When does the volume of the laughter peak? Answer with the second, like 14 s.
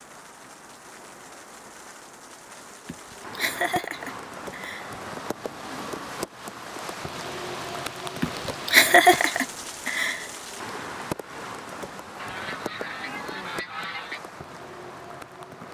9 s.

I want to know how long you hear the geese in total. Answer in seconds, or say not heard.
2 s.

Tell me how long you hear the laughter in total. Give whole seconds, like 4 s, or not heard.
4 s.